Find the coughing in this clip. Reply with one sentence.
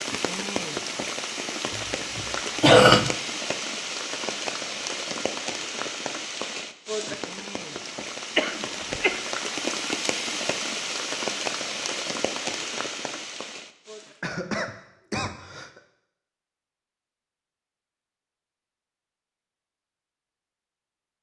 You can hear the coughing from 1.8 to 3.1 s, from 8.3 to 9.3 s and from 14.2 to 15.8 s.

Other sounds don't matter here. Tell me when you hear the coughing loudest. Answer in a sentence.
The volume of the coughing peaks at 3 seconds.